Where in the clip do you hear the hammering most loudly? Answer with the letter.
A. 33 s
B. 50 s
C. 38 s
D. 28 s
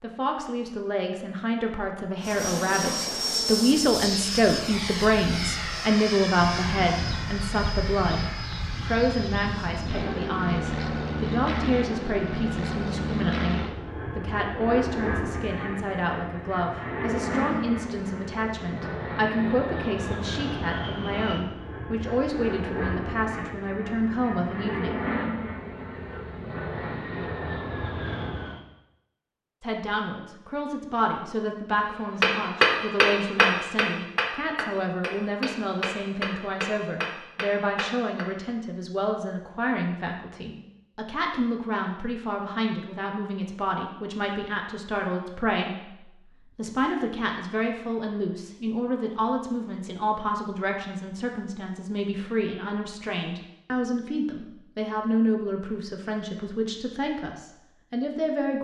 A.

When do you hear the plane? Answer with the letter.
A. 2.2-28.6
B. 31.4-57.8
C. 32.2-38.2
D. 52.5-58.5
A.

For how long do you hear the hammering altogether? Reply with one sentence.
You can hear the hammering for 6 seconds altogether.